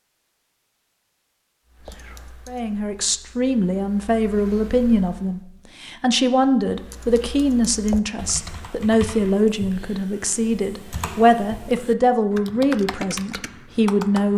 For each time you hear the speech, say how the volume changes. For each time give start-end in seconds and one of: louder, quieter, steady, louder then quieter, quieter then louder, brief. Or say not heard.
2.5-14.3 steady.